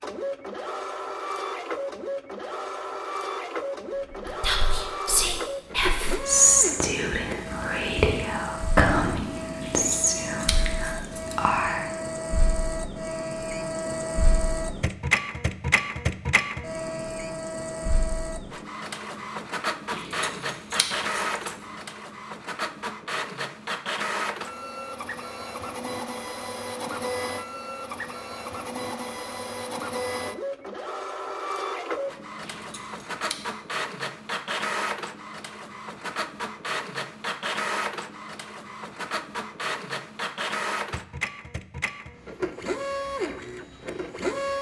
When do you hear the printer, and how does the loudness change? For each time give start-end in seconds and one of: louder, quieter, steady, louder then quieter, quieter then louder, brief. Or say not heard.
0.0-44.5 steady.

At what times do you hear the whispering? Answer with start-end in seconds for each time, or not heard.
4.2-11.9.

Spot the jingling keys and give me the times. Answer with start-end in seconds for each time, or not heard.
9.6-11.2, 19.9-21.6, 32.4-33.4.